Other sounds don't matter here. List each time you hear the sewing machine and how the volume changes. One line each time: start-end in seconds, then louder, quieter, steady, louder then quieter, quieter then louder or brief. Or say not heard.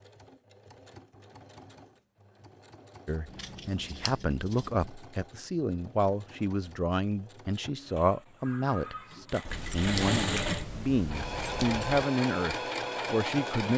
0.0-13.7 louder.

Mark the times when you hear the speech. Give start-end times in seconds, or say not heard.
3.0-13.7.